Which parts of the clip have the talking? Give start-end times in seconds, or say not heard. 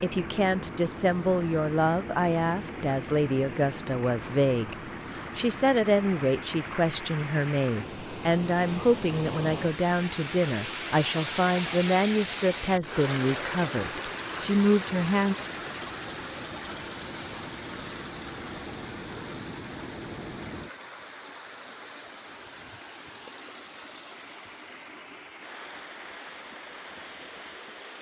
0.0-15.3.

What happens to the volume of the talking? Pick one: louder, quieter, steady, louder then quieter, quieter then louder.
steady.